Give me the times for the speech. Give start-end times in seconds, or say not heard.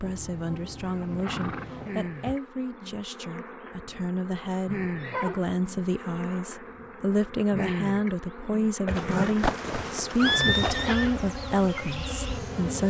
0.0-12.8.